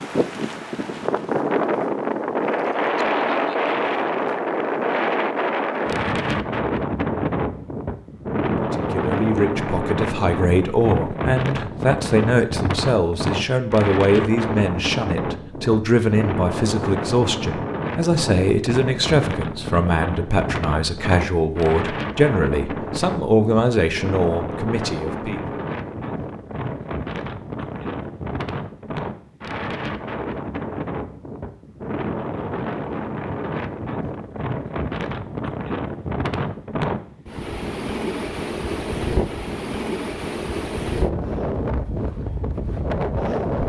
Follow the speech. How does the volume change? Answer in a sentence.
The loudness of the speech stays about the same.